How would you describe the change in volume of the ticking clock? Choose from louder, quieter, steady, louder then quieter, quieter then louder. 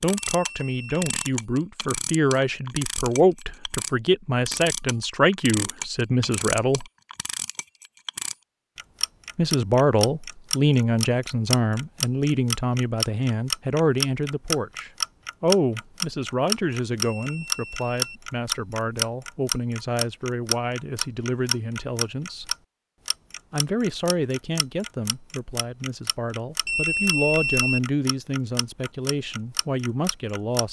louder then quieter.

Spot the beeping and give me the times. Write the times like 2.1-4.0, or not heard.
0.2-1.1, 17.0-18.2, 26.6-27.8.